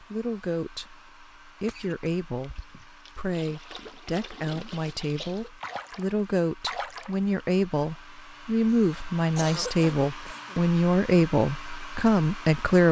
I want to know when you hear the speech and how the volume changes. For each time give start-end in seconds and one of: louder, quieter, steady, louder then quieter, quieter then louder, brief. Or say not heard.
0.0-12.8 louder.